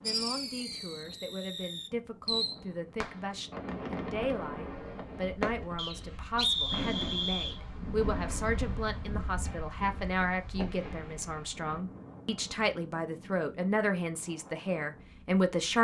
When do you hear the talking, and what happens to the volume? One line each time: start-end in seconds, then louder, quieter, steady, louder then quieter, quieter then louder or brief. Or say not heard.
0.0-15.7 louder.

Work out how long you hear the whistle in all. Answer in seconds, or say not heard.
2 s.